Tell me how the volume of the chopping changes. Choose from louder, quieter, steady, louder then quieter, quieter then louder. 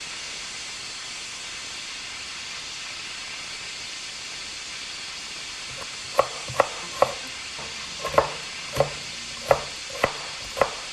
louder then quieter.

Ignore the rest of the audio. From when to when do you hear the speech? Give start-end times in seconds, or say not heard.
not heard.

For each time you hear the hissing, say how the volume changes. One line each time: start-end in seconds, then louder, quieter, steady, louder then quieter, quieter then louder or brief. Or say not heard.
0.0-10.8 steady.